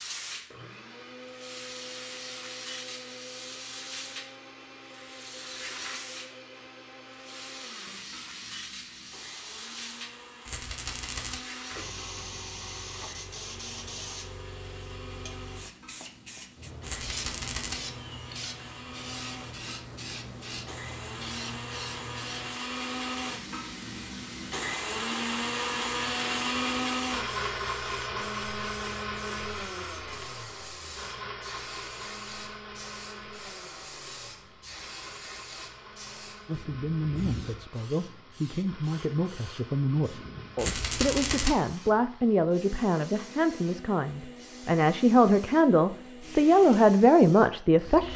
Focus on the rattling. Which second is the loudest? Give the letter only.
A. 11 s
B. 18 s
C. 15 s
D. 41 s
D.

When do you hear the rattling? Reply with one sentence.
You can hear the rattling from 10.4 to 11.4 s, from 16.8 to 17.8 s and from 40.5 to 41.5 s.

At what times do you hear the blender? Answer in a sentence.
You can hear the blender from 0.1 to 48.1 s.